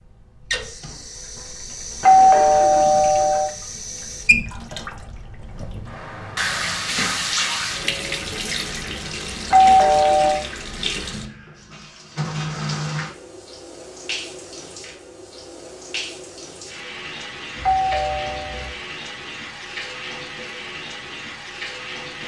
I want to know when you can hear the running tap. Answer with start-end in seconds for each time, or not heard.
0.0-22.2.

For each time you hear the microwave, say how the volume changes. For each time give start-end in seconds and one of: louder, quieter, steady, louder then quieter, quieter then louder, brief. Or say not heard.
not heard.